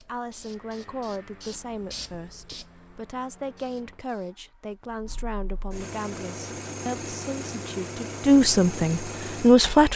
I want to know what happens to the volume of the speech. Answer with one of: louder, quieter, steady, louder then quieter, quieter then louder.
louder.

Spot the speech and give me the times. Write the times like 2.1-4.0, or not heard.
0.0-9.9.